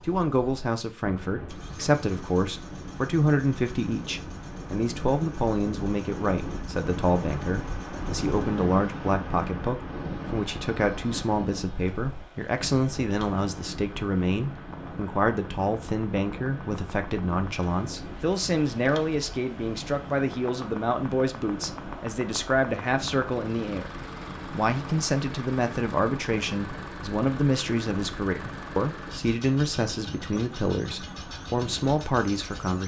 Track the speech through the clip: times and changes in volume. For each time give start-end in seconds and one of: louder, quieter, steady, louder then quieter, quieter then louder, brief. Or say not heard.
0.0-32.8 steady.